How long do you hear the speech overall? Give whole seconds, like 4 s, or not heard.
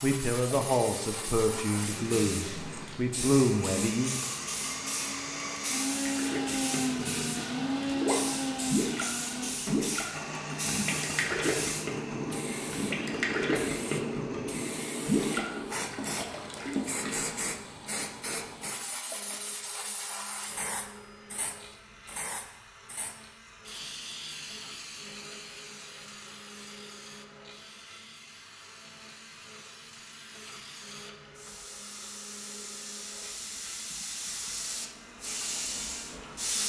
4 s.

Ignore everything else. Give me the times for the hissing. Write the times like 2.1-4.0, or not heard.
0.0-36.6.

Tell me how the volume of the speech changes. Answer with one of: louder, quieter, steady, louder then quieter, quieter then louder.
quieter then louder.